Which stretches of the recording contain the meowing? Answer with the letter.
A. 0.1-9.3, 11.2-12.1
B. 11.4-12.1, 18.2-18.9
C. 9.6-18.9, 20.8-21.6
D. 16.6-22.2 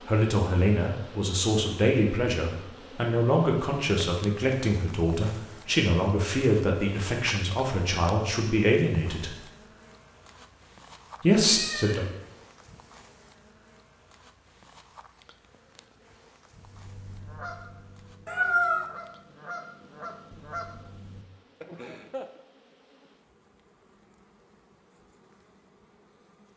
B.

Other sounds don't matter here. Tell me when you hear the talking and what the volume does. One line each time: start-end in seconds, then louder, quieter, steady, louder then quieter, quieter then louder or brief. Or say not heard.
0.1-9.3 steady
11.2-12.1 brief.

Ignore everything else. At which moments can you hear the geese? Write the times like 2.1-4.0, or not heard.
16.6-22.2.